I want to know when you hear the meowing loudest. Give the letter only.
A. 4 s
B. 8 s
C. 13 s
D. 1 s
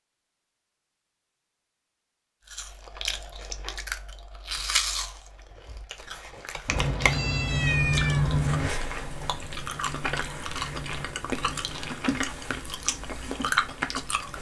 B.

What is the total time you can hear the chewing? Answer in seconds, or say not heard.
12 s.